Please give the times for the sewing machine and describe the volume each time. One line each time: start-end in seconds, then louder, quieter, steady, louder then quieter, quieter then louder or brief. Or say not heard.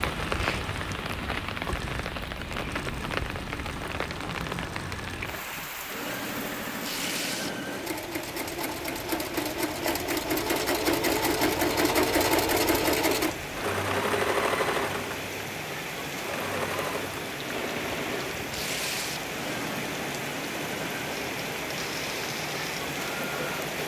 0.0-23.6 louder then quieter.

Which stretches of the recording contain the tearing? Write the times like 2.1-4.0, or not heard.
6.8-7.5, 18.5-19.2.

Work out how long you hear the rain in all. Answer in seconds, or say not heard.
24 s.